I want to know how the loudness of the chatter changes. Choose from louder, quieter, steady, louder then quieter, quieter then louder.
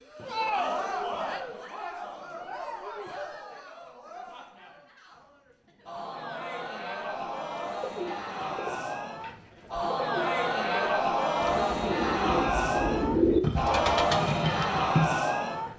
quieter then louder.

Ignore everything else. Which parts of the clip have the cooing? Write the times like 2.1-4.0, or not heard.
7.8-15.2.